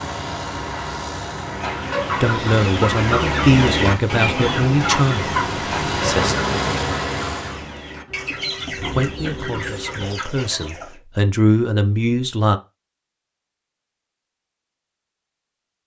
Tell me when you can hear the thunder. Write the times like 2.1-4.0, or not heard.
8.1-10.1.